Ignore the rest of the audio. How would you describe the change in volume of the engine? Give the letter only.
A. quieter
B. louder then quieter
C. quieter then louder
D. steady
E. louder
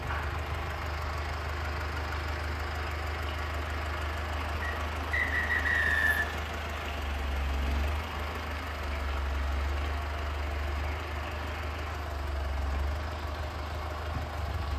D.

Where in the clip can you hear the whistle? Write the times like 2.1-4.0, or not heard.
4.6-6.3.